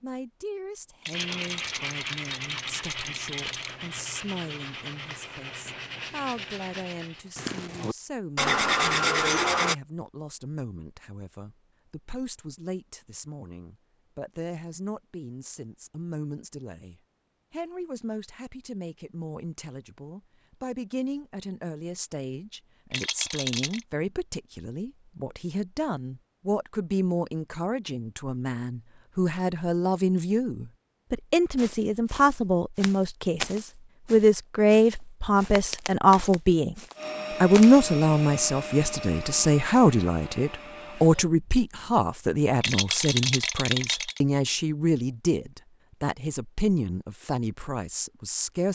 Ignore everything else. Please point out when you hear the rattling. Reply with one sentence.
You can hear the rattling from 1.0 to 3.8 s, from 22.9 to 23.9 s and from 42.6 to 44.2 s.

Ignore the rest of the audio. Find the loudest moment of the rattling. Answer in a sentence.
The volume of the rattling peaks at 43 seconds.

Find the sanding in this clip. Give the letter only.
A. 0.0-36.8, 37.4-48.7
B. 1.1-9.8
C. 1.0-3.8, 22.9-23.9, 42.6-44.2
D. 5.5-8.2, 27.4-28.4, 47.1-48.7
B.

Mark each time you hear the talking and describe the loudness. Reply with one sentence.
You can hear the talking from 0.0 to 36.8 s, getting louder; and from 37.4 to 48.7 s, getting quieter.